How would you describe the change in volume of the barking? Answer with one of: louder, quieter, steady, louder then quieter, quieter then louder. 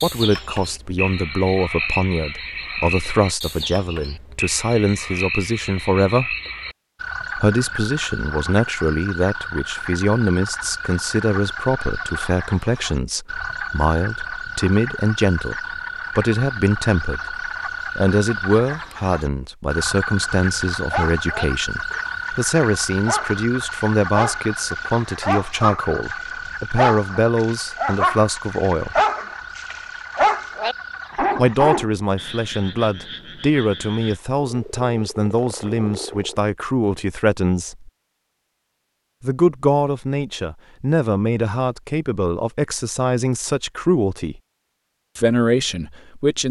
louder.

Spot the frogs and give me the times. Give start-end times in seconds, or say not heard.
0.0-36.4.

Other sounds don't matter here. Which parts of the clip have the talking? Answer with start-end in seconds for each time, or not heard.
0.0-6.3, 7.3-17.4, 17.9-29.0, 31.4-37.9, 39.2-44.4, 45.1-46.4.